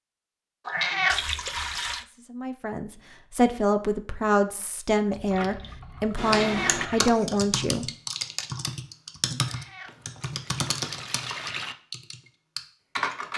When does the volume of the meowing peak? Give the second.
1 s.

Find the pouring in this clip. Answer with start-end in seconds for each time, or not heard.
1.1-2.0, 5.1-7.1, 9.8-11.8.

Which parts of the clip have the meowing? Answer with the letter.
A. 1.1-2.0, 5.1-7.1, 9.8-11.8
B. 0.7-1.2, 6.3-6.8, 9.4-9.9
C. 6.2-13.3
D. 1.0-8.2
B.